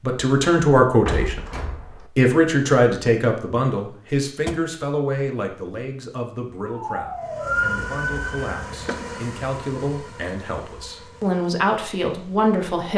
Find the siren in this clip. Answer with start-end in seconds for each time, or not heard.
6.6-8.7.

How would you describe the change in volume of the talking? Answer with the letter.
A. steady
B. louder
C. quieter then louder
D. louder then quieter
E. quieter
C.